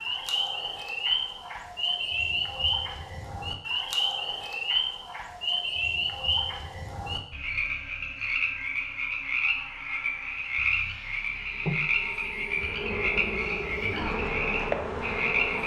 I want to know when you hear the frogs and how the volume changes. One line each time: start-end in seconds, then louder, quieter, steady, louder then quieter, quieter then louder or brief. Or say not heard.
0.0-15.6 steady.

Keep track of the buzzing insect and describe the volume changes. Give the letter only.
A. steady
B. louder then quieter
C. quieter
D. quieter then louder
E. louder
E.